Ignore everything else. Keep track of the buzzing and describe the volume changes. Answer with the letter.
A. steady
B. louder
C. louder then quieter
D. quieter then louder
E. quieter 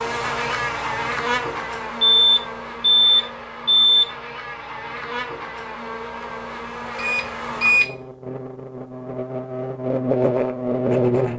D.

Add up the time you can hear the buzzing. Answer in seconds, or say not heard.
11 s.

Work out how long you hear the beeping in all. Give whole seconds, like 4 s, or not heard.
3 s.